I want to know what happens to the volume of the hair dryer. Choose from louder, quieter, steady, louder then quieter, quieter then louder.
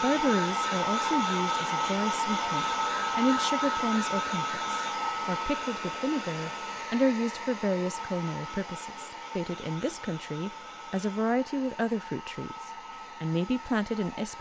quieter.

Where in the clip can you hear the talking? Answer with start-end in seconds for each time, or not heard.
0.0-14.3.